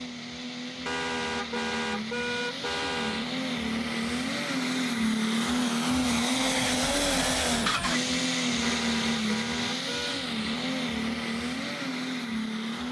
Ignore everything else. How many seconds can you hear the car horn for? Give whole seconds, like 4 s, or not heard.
4 s.